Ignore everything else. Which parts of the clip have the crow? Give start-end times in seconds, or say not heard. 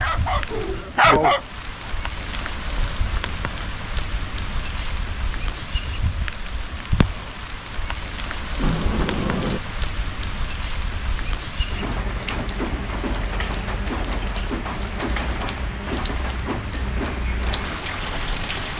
not heard.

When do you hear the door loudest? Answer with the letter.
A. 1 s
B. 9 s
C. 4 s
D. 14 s
B.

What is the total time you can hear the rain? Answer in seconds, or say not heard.
19 s.